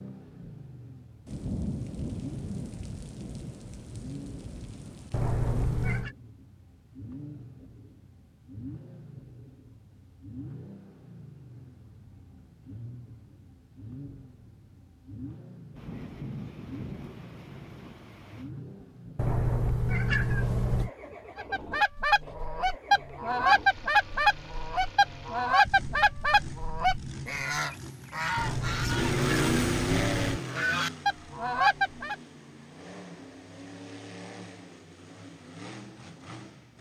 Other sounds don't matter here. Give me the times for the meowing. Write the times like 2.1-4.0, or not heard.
5.1-6.2, 19.1-20.9, 28.4-30.4.